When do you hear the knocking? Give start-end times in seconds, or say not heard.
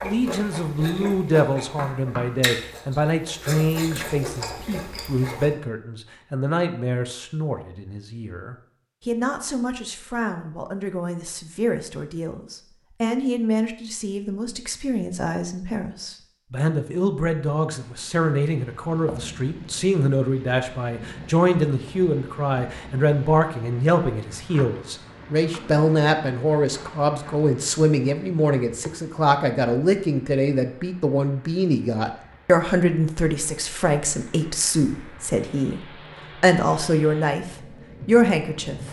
1.6-2.4.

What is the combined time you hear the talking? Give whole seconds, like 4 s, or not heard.
39 s.